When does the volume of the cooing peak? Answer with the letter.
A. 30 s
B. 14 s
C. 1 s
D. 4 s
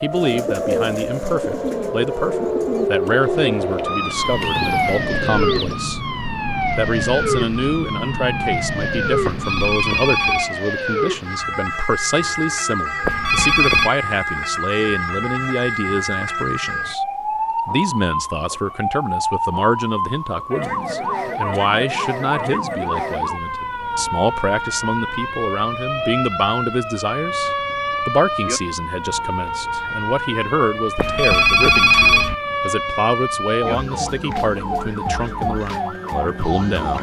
C.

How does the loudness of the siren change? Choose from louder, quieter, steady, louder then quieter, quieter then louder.
steady.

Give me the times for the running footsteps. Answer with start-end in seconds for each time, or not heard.
not heard.